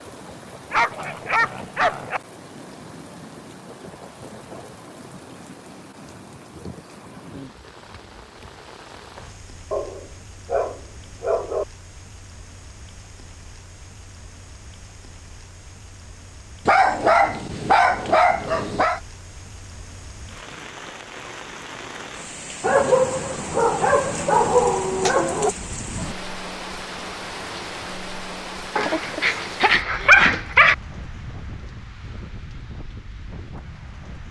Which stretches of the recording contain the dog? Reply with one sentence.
You can hear the dog from 0.7 to 2.2 s, from 9.7 to 11.7 s, from 16.6 to 19.0 s, from 22.6 to 25.5 s and from 28.8 to 30.8 s.